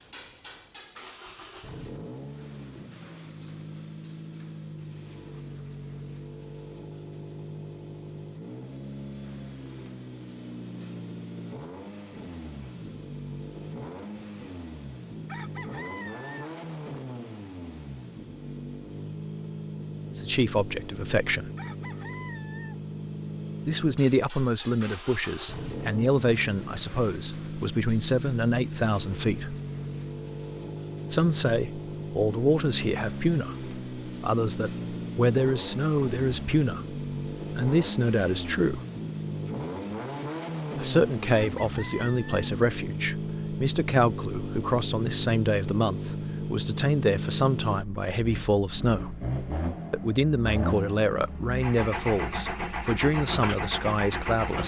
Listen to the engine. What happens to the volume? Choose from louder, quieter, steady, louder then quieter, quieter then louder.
louder.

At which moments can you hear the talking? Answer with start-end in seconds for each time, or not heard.
20.1-21.5, 23.6-29.6, 31.1-38.8, 40.8-49.1, 49.9-54.6.